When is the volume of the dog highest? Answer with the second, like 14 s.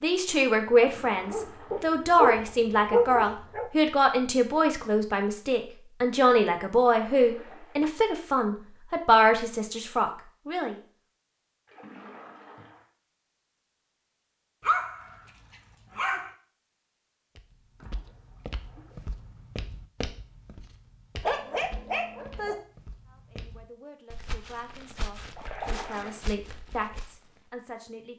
3 s.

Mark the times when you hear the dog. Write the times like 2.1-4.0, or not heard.
0.8-3.7, 14.6-16.3, 21.2-22.6.